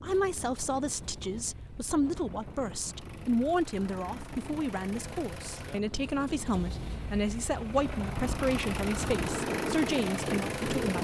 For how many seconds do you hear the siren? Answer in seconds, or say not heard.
not heard.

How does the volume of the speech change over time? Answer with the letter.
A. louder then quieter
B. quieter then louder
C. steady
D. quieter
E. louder
C.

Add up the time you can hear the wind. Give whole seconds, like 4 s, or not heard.
11 s.